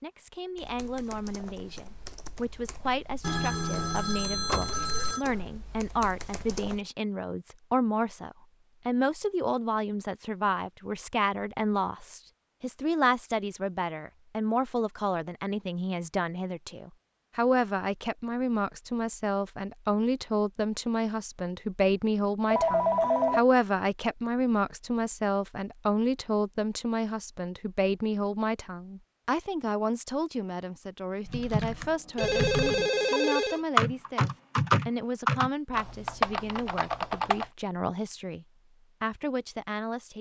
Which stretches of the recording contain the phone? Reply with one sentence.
The phone can be heard from 3.2 to 5.2 s, from 22.5 to 23.4 s and from 32.1 to 33.6 s.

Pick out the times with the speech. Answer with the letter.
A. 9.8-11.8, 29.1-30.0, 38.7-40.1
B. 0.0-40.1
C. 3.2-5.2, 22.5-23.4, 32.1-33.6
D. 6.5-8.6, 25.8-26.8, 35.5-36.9
B.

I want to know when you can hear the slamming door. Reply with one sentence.
You can't hear the slamming door here.